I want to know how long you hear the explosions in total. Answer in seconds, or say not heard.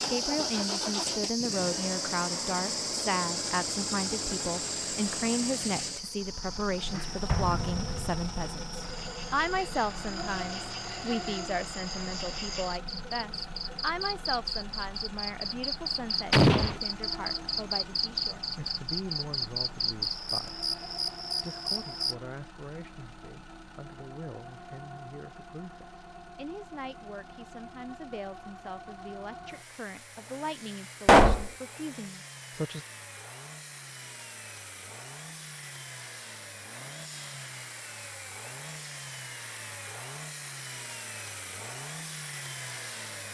2 s.